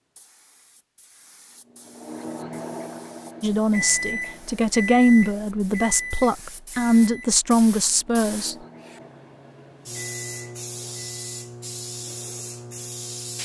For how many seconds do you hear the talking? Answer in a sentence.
The talking can be heard for 5 seconds in total.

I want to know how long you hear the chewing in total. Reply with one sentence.
You can't hear the chewing here.